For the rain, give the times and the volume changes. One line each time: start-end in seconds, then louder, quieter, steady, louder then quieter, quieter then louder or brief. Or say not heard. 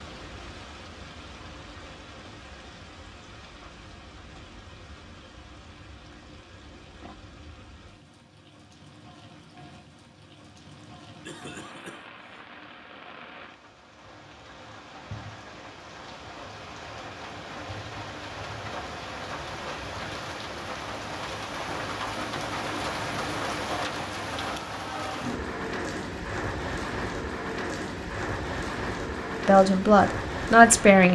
0.0-31.1 louder.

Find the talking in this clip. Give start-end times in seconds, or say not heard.
29.4-31.1.